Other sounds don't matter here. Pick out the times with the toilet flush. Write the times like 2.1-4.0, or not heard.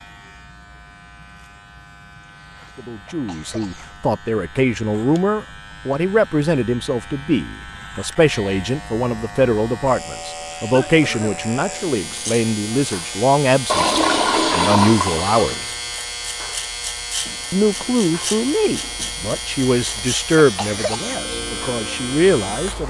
13.7-15.6.